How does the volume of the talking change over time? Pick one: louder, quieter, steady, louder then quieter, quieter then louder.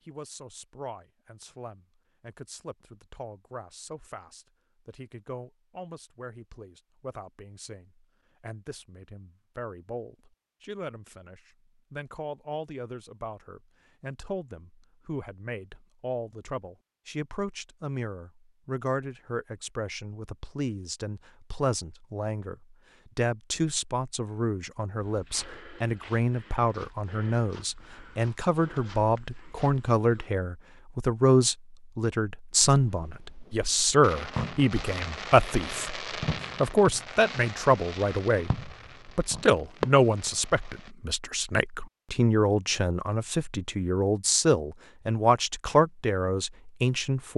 louder.